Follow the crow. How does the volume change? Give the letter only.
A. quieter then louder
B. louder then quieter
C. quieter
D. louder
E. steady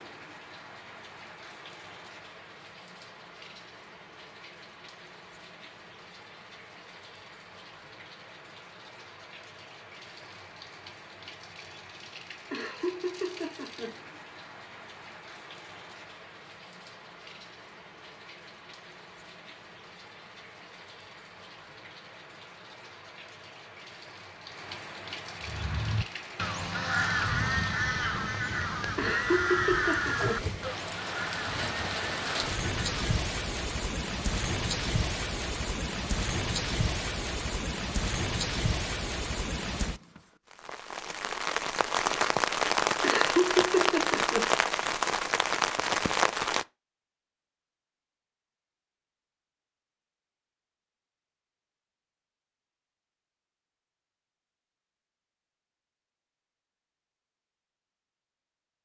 C.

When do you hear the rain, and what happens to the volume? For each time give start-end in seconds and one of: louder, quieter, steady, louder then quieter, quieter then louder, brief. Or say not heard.
0.0-46.6 louder.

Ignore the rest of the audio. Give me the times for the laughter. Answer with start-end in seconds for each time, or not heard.
12.5-13.9, 28.9-30.4, 43.0-44.5.